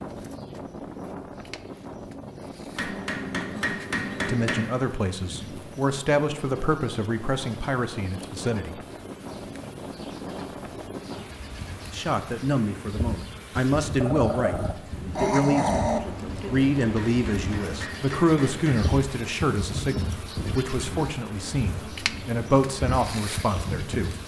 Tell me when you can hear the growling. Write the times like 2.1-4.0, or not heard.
14.0-16.0.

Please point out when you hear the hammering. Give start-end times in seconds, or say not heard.
2.8-4.7, 16.9-18.9.